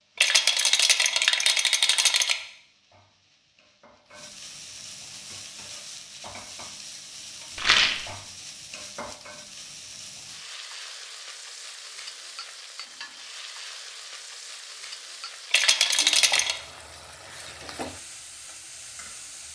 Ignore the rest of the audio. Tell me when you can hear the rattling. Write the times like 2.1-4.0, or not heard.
0.1-2.4, 7.5-8.1, 15.5-16.6.